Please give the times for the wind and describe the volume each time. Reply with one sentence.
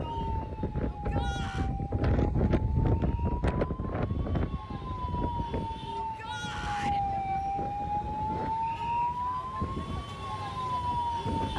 You can hear the wind from 0.0 to 11.5 s, getting quieter.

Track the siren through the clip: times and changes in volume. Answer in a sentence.
The siren can be heard from 0.0 to 11.5 s, getting louder.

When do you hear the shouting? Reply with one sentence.
You can hear the shouting from 0.8 to 1.7 s and from 6.0 to 7.0 s.